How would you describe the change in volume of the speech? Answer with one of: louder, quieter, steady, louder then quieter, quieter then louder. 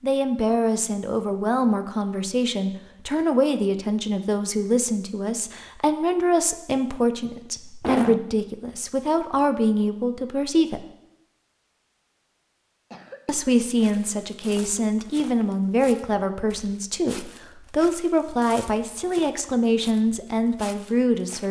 steady.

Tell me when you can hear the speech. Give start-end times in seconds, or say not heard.
0.0-10.8, 13.2-21.4.